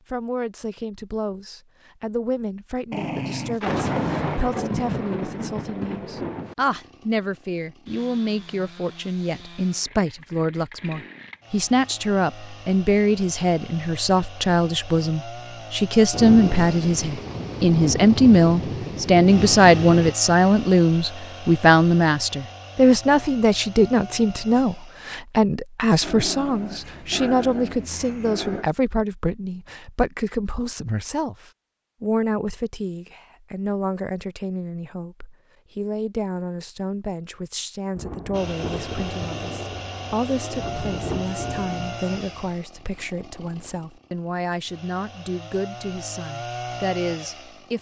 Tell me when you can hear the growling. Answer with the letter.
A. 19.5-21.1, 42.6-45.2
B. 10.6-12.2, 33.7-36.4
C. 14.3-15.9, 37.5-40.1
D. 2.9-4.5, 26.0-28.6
D.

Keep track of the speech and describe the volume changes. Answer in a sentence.
The loudness of the speech goes up, then down.